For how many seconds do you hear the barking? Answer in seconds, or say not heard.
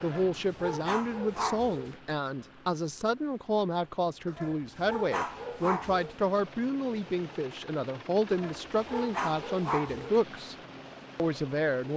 6 s.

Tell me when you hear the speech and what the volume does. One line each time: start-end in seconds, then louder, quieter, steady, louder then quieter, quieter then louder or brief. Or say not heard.
0.0-10.6 steady
11.2-11.9 brief.